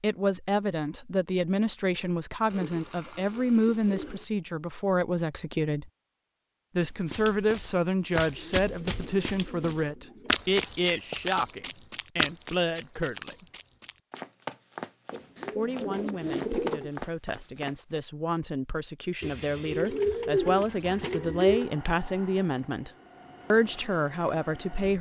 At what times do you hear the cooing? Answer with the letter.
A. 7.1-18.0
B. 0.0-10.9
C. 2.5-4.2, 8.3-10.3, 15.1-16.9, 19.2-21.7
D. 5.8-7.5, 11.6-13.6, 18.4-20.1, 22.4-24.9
C.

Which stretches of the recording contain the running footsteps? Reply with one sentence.
The running footsteps can be heard from 7.1 to 18.0 s.